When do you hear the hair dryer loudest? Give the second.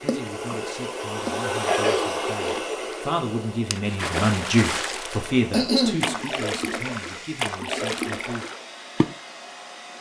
2 s.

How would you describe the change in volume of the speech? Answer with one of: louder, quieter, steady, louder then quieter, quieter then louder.
louder then quieter.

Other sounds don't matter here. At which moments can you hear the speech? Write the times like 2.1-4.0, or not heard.
0.0-8.5.